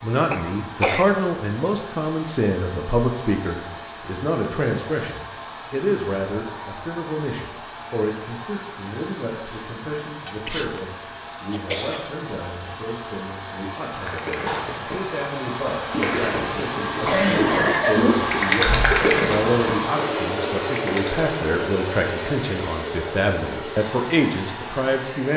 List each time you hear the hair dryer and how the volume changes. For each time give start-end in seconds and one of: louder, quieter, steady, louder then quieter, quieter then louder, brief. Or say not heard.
0.0-25.3 louder.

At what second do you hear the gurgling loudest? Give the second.
19 s.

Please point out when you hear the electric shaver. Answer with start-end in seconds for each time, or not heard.
not heard.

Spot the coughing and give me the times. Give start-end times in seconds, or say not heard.
0.3-1.1, 10.2-12.1, 17.0-18.9.